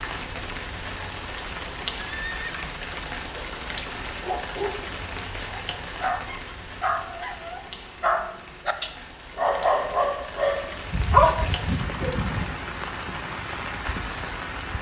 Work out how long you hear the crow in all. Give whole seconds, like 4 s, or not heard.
not heard.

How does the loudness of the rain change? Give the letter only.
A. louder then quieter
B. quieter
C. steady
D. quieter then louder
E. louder
D.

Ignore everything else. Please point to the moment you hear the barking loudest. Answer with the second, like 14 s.
11 s.